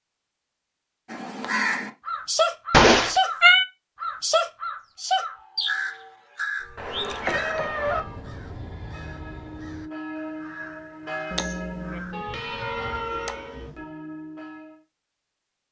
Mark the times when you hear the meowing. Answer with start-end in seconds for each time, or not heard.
2.7-3.6, 6.8-8.0, 11.3-13.7.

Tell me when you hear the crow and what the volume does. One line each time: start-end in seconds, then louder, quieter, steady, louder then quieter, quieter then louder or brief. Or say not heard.
1.1-3.4 brief
4.0-13.1 quieter.